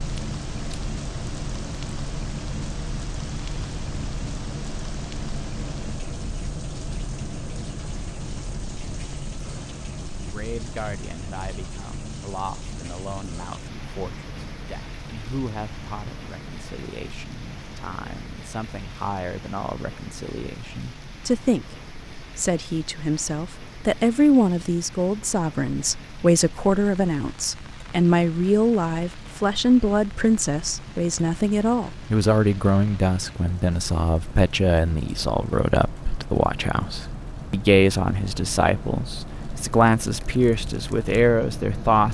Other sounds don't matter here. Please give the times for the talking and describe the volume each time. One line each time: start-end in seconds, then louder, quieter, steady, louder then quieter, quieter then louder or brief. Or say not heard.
10.1-42.0 louder.